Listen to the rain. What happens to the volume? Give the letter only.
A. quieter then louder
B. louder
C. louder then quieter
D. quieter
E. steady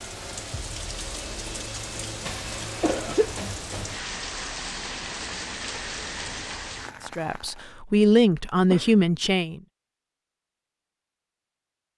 E.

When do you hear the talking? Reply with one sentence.
You can hear the talking from 7.0 to 9.6 s.